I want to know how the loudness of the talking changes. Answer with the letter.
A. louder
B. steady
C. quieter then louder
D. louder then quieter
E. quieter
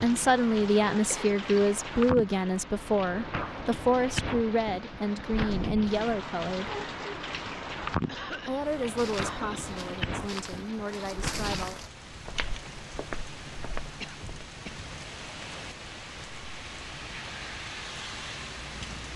E.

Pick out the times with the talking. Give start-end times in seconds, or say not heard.
0.0-6.8, 8.4-11.8.